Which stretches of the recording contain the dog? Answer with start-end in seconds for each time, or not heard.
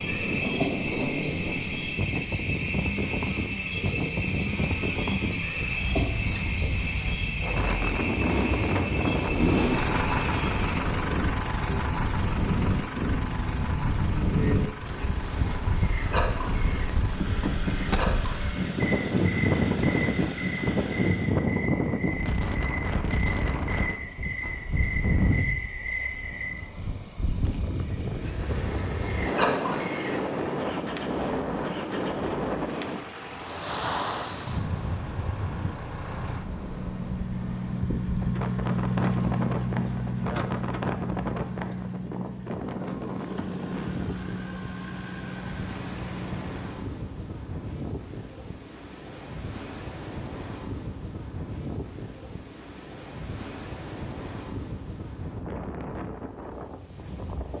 not heard.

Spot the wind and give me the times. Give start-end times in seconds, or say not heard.
0.0-57.5.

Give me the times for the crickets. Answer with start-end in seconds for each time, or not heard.
0.0-30.2.